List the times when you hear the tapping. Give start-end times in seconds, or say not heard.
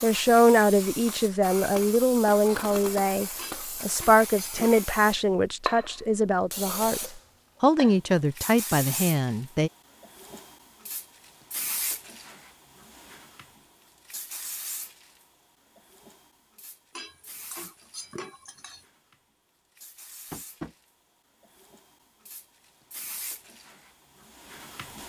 20.3-20.8.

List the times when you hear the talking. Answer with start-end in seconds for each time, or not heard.
0.0-7.0, 7.6-9.7.